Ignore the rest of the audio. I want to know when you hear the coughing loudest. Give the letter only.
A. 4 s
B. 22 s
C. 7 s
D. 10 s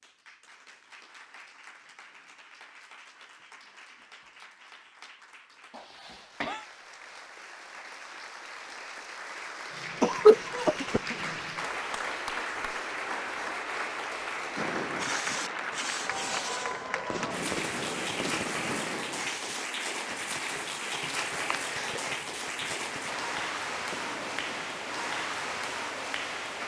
D.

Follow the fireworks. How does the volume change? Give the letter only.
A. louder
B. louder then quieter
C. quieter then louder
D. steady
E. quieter
E.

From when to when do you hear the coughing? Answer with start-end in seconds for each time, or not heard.
5.7-6.7, 10.0-11.2, 21.3-22.1.